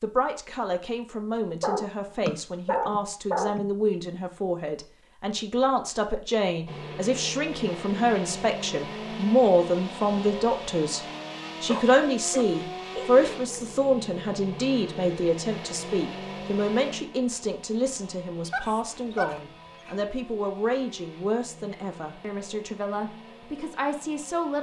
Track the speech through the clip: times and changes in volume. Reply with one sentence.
The speech can be heard from 0.0 to 11.0 s, getting louder; and from 11.6 to 24.5 s, getting quieter.